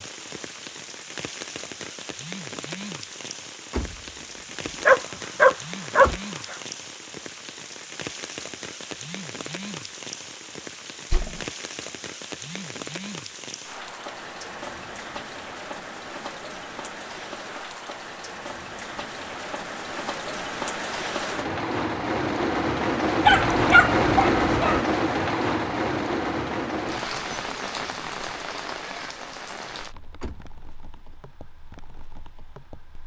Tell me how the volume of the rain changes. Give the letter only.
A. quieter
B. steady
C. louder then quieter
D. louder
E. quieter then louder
C.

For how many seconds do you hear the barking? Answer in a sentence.
The barking can be heard for 3 seconds in total.